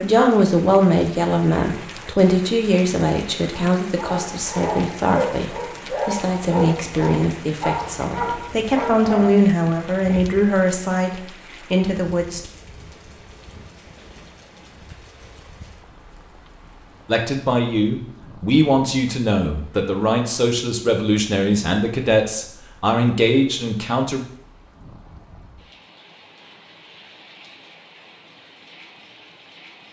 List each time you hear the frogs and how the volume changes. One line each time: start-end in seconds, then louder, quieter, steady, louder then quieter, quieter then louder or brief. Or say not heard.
not heard.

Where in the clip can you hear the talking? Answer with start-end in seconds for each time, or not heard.
0.0-12.4, 17.1-24.2.